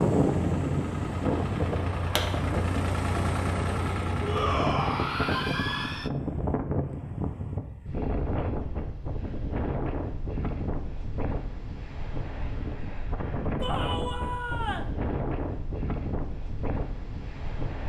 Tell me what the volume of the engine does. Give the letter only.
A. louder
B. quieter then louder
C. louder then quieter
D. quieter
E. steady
A.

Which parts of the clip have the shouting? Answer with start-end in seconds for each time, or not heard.
4.2-6.1, 13.6-14.9.